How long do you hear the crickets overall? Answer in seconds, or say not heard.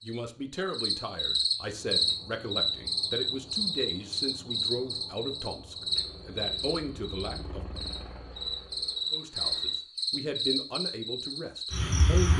12 s.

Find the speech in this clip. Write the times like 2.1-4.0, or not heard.
0.0-7.8, 9.1-12.3.